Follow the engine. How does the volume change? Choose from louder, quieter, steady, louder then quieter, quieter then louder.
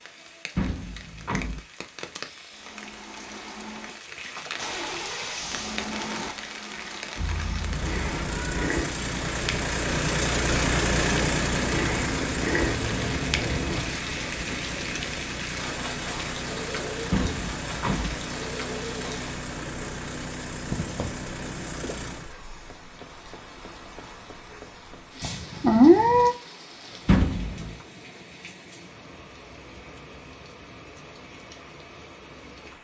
louder then quieter.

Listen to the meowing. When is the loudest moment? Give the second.
26 s.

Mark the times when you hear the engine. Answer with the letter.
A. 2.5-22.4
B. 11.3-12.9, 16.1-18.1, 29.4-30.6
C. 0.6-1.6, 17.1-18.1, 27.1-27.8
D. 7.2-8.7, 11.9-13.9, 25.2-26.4
A.